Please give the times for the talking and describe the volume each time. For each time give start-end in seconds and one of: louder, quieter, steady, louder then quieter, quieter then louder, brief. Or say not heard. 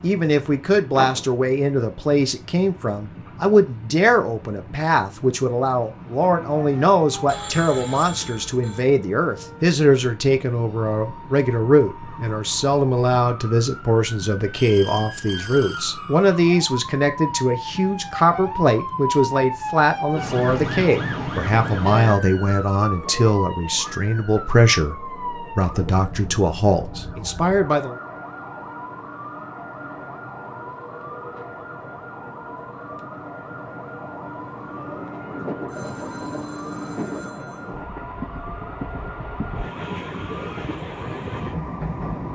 0.0-27.9 steady.